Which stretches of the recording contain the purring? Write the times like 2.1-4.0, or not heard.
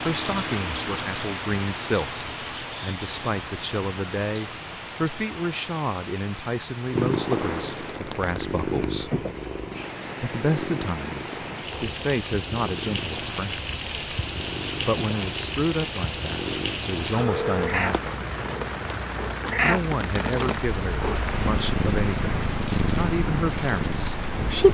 6.9-24.6.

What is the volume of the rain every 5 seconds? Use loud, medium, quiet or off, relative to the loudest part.
loud, medium, loud, loud, loud.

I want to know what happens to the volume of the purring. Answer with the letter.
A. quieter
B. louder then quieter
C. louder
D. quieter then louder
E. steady
D.